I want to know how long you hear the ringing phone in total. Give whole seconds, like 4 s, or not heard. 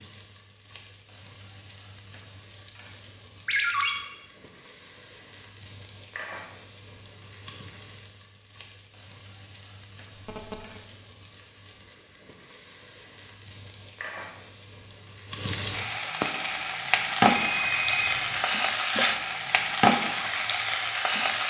2 s.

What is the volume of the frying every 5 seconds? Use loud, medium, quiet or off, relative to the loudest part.
quiet, quiet, quiet, loud, loud.